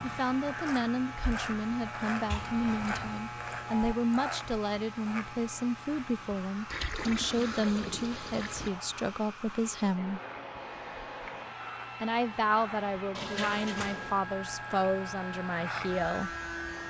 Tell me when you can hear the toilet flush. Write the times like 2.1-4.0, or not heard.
2.3-3.2, 6.7-8.7, 13.2-14.2.